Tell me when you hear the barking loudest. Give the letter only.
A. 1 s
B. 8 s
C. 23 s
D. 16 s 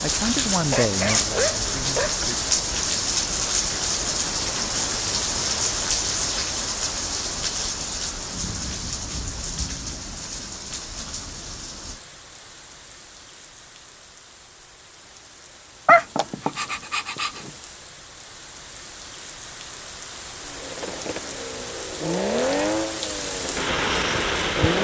D.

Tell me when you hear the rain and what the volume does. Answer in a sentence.
You can hear the rain from 0.0 to 24.7 s, getting quieter then louder.